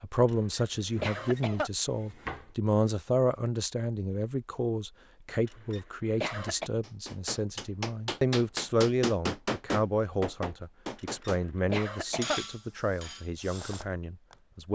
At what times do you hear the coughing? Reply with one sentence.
The coughing can be heard from 0.2 to 1.7 s, from 5.5 to 6.7 s and from 10.9 to 12.4 s.